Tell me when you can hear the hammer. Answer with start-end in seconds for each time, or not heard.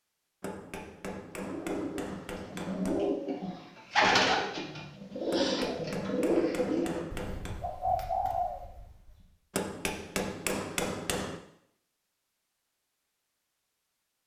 0.4-3.1, 5.3-7.6, 9.5-11.4.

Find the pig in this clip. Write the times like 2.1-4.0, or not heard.
not heard.